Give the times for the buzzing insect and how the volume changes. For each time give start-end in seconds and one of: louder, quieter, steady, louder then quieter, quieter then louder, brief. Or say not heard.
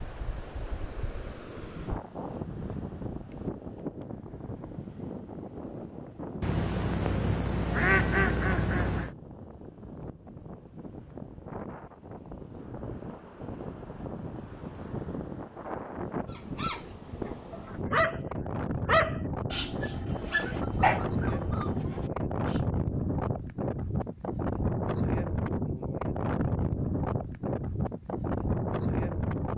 not heard.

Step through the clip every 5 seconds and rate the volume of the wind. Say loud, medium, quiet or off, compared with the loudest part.
medium, medium, medium, medium, loud, loud.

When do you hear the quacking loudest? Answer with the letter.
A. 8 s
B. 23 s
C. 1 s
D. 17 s
A.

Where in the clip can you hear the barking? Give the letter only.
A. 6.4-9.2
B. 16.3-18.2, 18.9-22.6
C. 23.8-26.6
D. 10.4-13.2
B.